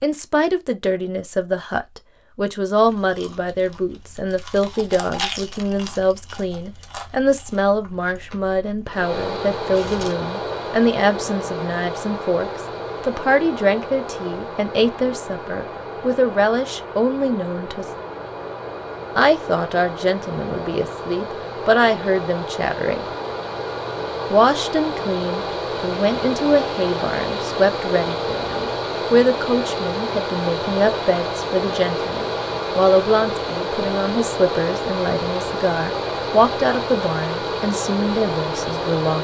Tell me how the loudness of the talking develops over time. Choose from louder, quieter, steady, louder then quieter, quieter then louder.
steady.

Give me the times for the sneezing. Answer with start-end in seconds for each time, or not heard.
not heard.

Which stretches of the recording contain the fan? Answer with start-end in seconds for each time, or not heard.
8.8-39.1.